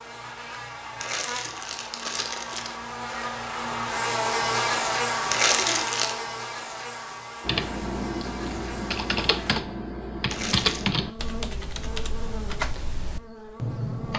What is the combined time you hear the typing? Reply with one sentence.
You can hear the typing for 7 seconds altogether.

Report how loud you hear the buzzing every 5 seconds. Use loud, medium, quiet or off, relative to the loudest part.
loud, loud, medium.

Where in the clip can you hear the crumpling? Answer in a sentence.
You can hear the crumpling from 0.9 to 2.8 s, from 5.3 to 6.2 s and from 10.2 to 10.9 s.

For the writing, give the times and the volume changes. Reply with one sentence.
You can't hear the writing here.